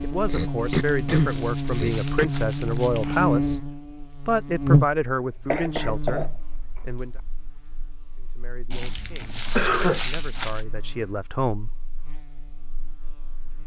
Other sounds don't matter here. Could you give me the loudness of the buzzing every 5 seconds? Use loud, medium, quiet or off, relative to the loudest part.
loud, quiet, quiet.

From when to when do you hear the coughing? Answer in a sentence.
You can hear the coughing from 0.2 to 2.2 s, from 5.5 to 6.3 s and from 9.6 to 10.0 s.